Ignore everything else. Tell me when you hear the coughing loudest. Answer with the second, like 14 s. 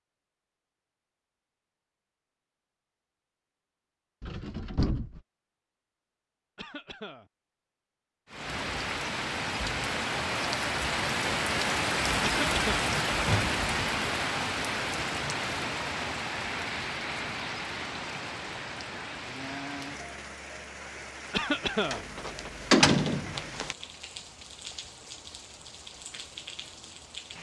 22 s.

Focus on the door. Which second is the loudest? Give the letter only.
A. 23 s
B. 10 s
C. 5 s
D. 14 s
A.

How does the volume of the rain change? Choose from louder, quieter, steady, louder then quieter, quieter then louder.
quieter.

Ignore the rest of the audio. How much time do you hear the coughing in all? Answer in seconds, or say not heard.
2 s.